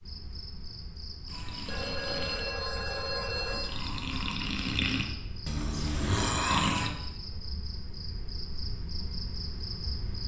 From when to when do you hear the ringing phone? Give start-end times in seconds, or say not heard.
1.6-3.7.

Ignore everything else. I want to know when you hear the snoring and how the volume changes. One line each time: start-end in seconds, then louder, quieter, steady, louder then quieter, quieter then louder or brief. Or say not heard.
1.2-7.0 quieter then louder.